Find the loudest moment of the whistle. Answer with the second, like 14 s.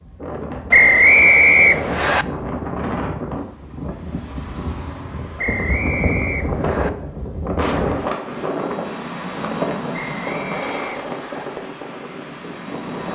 1 s.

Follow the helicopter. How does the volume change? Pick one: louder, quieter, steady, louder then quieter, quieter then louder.
quieter.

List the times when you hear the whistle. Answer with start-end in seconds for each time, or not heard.
0.7-2.2, 5.3-6.9, 9.9-11.4.